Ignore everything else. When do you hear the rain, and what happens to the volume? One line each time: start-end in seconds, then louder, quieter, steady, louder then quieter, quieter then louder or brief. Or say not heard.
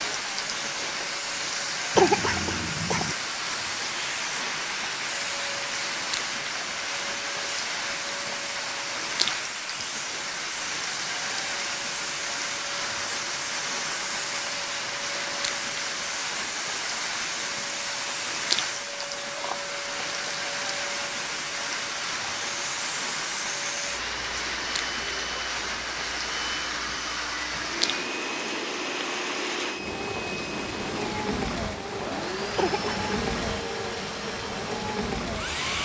0.0-35.7 steady.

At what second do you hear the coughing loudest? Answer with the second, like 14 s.
2 s.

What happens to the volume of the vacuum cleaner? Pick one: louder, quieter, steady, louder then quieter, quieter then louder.
steady.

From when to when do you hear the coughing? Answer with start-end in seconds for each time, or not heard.
1.9-3.1, 32.5-33.2.